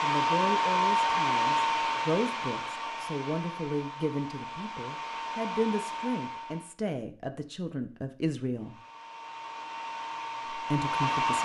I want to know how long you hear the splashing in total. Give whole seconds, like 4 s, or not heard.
not heard.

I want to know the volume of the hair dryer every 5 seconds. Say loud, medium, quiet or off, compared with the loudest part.
loud, medium, loud.